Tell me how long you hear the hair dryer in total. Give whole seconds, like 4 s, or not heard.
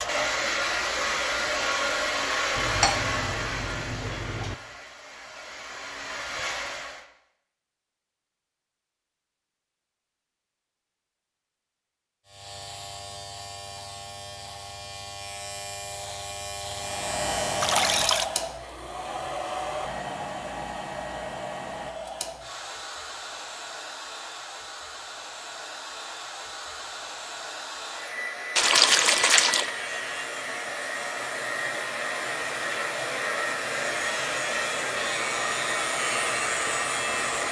28 s.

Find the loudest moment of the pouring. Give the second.
29 s.